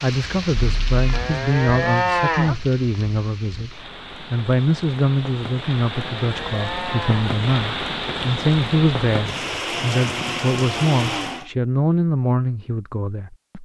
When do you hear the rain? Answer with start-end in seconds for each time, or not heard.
0.0-11.4.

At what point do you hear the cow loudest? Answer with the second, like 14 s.
2 s.